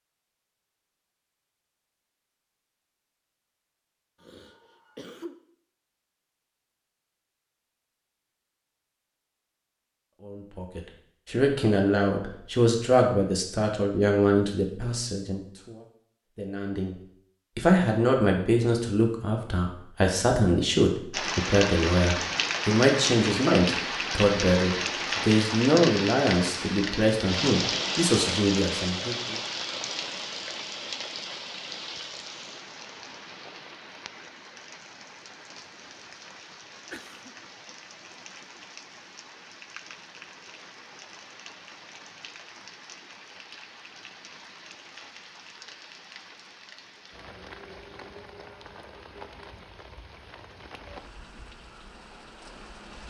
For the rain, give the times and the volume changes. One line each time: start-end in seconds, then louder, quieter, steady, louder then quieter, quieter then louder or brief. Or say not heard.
21.1-53.0 quieter.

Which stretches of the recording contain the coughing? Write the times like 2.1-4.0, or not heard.
4.2-5.3, 36.9-37.4.